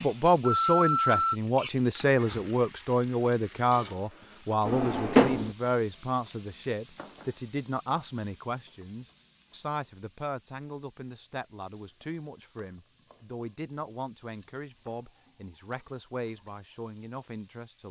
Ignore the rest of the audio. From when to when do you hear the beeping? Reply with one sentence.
The beeping can be heard from 0.4 to 1.4 s.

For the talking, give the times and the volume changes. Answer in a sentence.
The talking can be heard from 0.0 to 17.8 s, getting quieter.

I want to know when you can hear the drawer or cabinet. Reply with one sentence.
You can hear the drawer or cabinet from 4.7 to 5.5 s.